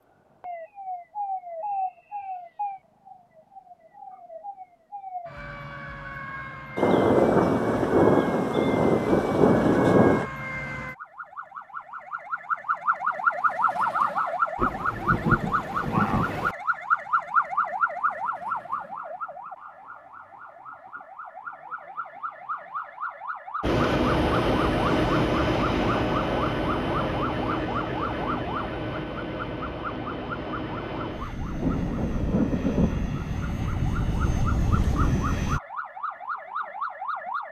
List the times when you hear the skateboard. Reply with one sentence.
You can't hear the skateboard here.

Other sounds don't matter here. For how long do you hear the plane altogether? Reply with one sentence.
You can hear the plane for 12 seconds altogether.